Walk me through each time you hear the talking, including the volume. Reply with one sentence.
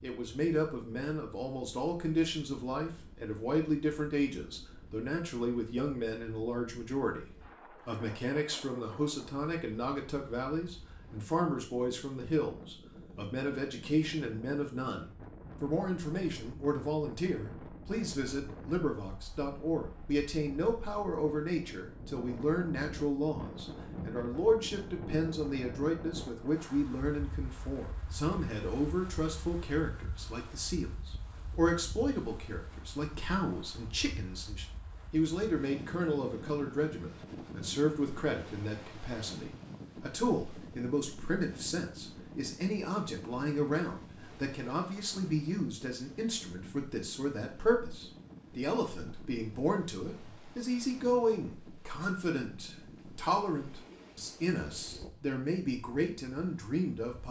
You can hear the talking from 0.0 to 57.2 s, at a steady volume.